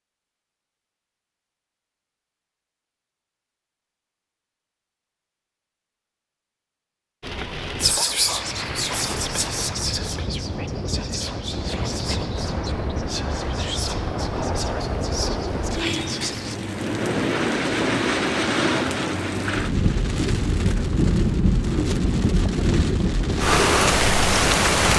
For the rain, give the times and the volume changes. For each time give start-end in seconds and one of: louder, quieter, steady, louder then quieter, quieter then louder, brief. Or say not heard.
7.2-24.9 louder.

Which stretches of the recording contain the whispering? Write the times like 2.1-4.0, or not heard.
7.8-16.6.